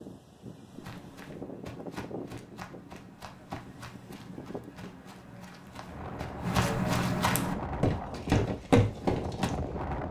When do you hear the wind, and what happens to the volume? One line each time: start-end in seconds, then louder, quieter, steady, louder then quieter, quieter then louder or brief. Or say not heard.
0.0-10.0 quieter then louder.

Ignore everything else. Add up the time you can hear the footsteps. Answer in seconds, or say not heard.
9 s.